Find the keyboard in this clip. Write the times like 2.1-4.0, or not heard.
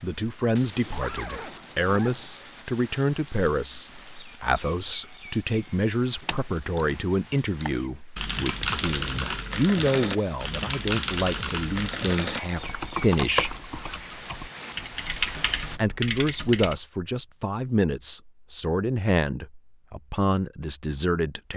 6.2-16.8.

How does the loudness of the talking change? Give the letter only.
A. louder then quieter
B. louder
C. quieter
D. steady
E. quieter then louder
D.